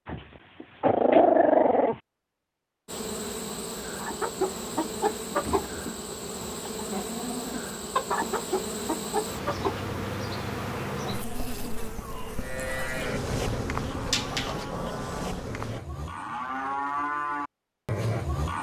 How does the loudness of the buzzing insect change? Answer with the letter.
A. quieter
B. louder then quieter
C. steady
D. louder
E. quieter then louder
C.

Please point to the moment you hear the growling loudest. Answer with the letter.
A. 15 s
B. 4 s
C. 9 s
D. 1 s
D.